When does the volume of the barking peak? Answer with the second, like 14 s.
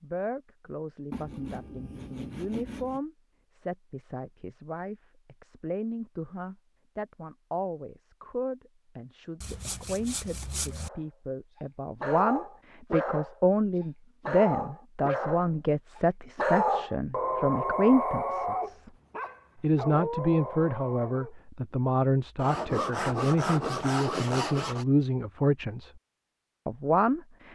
17 s.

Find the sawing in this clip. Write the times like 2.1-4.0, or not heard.
1.1-3.0, 9.4-10.9, 22.4-24.9.